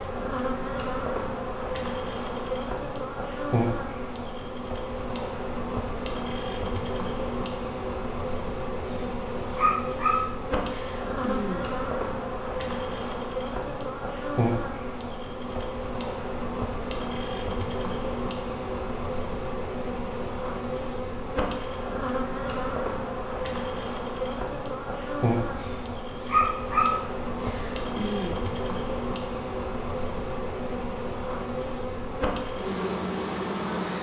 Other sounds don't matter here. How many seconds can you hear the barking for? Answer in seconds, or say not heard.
6 s.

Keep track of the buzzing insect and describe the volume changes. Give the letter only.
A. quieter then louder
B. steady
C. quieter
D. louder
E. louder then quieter
B.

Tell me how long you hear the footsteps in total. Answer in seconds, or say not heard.
not heard.